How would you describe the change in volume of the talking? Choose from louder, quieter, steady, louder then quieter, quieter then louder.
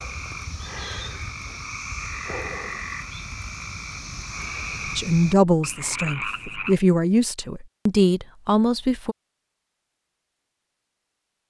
quieter then louder.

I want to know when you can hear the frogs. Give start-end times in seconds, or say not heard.
0.0-6.8.